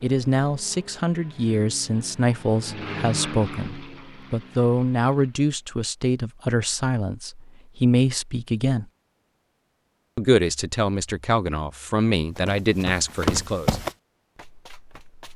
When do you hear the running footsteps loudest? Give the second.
13 s.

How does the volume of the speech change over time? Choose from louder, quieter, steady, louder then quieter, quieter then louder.
steady.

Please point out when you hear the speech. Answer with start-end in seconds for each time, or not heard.
0.0-8.8, 10.2-13.8.